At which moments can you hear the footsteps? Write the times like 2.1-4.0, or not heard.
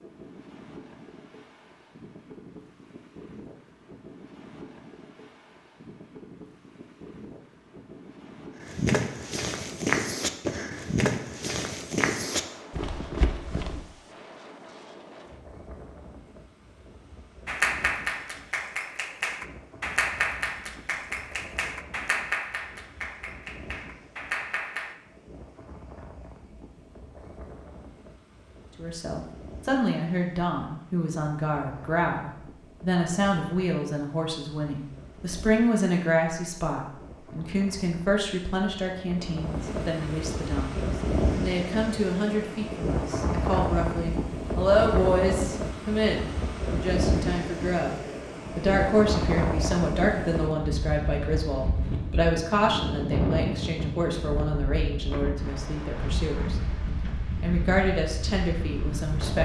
8.6-13.9.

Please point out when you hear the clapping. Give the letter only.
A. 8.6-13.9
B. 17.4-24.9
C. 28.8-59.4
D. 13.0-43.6
B.